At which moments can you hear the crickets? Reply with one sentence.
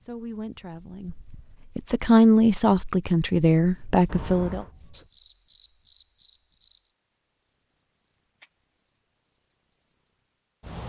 You can hear the crickets from 0.0 to 10.8 s.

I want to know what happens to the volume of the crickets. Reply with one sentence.
The volume of the crickets goes up, then down.